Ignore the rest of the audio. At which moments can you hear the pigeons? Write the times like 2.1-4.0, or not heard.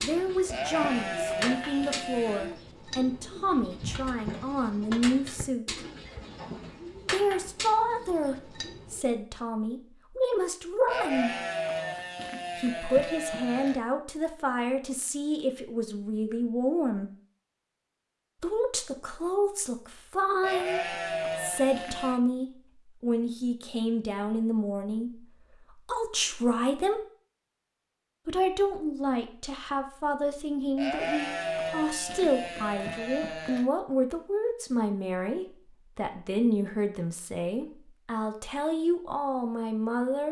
0.0-9.1.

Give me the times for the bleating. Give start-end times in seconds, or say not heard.
0.5-2.5, 10.8-13.8, 20.4-22.2, 30.8-33.6.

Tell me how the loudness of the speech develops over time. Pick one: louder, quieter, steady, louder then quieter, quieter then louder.
steady.